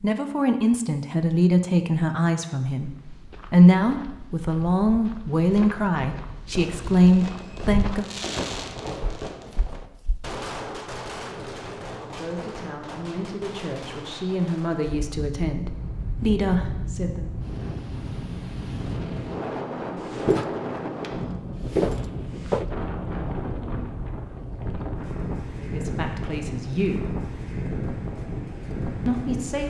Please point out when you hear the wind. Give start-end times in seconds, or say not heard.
14.8-29.6.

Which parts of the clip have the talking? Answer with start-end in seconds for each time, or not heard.
0.0-2.9, 3.5-8.1, 12.0-17.3, 25.6-27.1, 29.1-29.6.